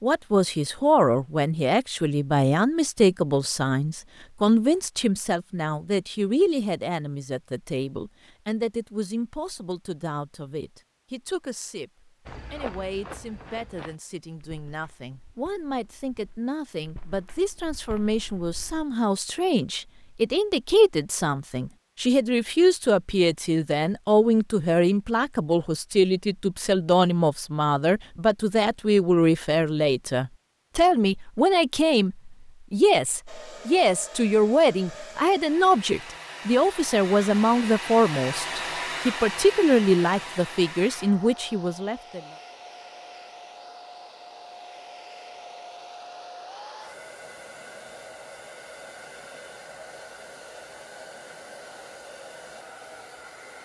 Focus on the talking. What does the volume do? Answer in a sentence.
The loudness of the talking goes down, then up.